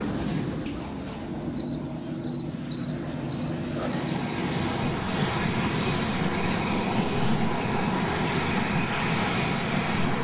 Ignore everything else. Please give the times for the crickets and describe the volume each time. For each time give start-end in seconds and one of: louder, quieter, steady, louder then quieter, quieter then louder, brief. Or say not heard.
0.0-10.1 louder then quieter.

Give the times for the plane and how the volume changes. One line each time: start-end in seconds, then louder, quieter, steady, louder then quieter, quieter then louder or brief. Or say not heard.
0.0-10.1 louder.